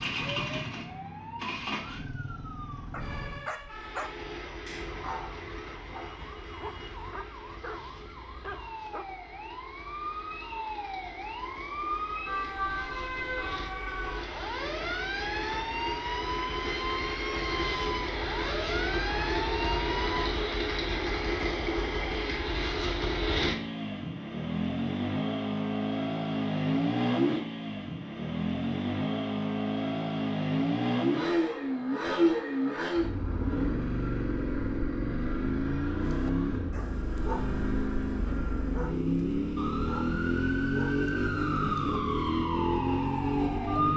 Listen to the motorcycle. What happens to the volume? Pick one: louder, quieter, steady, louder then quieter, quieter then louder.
louder.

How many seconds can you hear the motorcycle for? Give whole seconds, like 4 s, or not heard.
44 s.